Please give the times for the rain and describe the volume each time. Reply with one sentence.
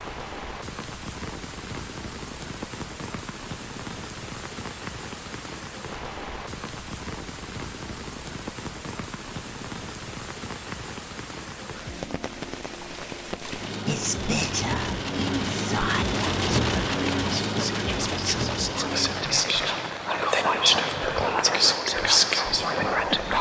You can hear the rain from 0.0 to 23.3 s, getting louder then quieter.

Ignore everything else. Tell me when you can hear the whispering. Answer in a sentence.
The whispering can be heard from 13.8 to 23.3 s.